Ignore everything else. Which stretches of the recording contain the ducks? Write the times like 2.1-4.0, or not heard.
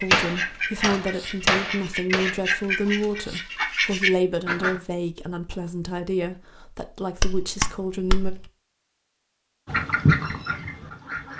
0.0-4.8, 9.7-11.3.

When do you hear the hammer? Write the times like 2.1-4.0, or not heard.
0.1-2.4, 7.2-8.4.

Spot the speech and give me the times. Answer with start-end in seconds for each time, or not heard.
0.0-8.3.